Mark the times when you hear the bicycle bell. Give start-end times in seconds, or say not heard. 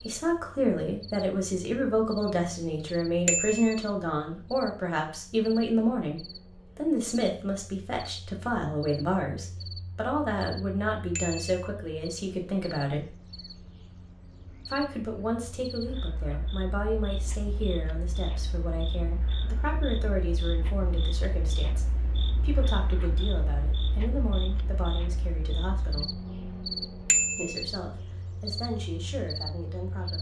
3.2-3.8, 11.2-11.7, 27.1-27.6.